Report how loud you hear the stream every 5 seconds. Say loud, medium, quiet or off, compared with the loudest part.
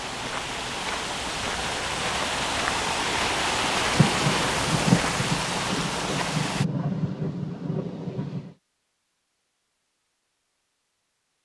loud, loud, off.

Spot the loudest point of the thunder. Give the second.
5 s.